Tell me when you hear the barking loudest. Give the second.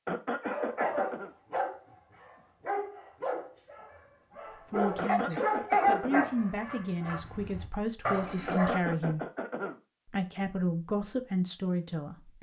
6 s.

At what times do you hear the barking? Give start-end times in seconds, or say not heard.
0.4-8.8.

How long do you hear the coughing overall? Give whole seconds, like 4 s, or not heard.
4 s.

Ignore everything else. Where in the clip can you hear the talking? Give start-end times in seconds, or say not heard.
4.7-9.2, 10.1-12.3.